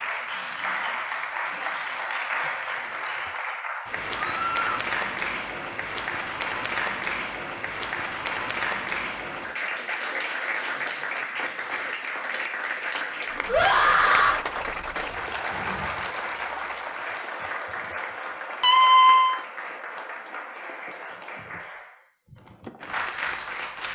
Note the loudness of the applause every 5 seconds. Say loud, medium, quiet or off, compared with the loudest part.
loud, loud, loud, loud, medium.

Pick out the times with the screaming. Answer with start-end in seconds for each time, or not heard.
4.2-4.8, 13.4-14.4, 18.6-19.4.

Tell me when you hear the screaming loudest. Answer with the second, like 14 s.
19 s.